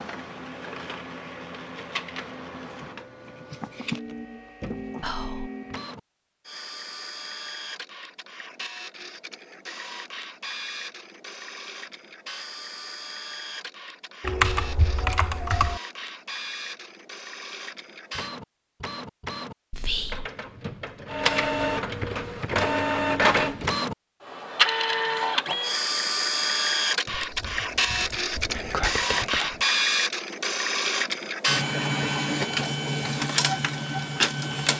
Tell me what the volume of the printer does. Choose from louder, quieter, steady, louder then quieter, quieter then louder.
louder.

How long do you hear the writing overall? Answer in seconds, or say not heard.
not heard.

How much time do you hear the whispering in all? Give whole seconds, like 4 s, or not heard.
2 s.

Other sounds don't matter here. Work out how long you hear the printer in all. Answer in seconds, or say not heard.
35 s.